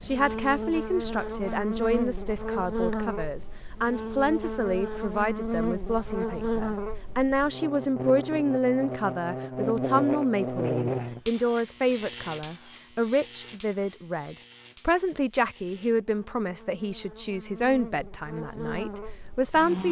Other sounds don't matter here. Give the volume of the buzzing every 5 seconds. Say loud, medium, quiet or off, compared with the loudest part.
loud, loud, loud, medium.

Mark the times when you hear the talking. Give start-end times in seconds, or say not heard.
0.0-19.8.